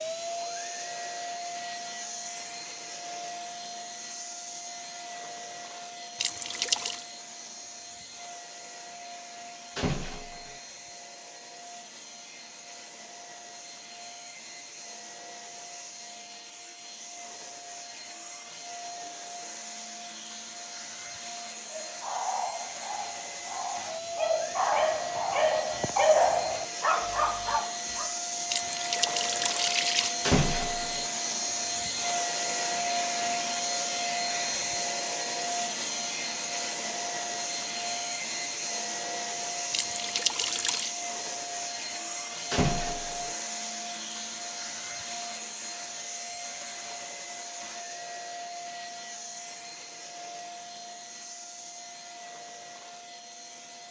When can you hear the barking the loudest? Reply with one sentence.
The loudest moment of the barking is at 26 seconds.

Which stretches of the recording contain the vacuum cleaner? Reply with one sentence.
You can hear the vacuum cleaner from 0.0 to 53.8 s.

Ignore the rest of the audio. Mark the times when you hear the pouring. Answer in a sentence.
You can hear the pouring from 6.2 to 7.0 s, from 28.5 to 30.1 s and from 39.7 to 40.9 s.